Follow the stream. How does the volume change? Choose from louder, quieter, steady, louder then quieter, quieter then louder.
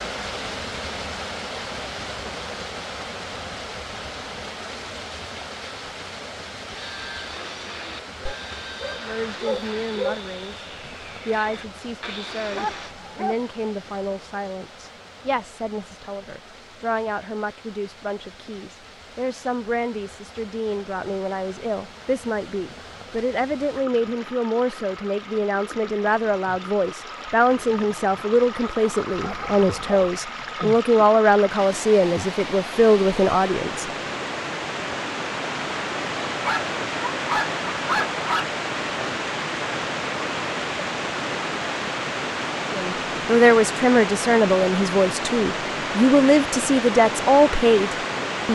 quieter then louder.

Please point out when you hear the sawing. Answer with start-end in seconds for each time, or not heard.
6.7-12.9.